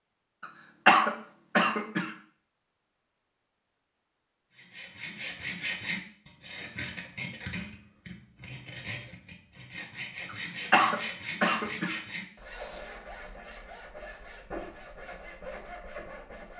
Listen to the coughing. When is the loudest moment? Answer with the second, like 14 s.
1 s.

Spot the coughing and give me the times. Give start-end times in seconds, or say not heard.
0.4-2.1, 10.2-12.0.